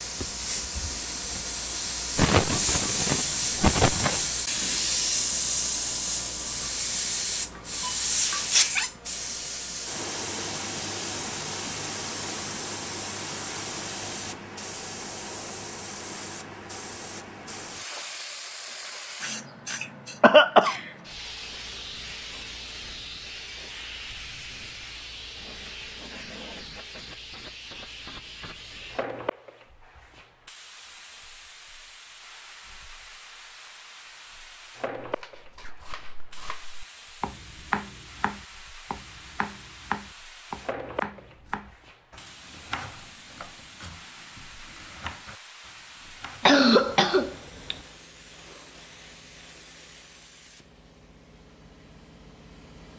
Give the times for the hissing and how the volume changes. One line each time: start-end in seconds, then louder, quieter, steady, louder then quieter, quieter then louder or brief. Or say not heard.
0.0-52.9 quieter.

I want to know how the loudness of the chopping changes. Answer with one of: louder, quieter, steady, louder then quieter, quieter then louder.
louder then quieter.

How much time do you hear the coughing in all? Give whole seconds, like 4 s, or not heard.
4 s.